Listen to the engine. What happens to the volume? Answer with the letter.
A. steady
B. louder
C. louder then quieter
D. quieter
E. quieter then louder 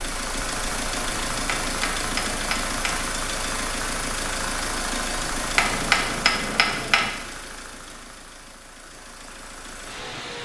D.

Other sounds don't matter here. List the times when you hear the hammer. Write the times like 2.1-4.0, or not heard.
1.4-3.0, 5.5-7.1.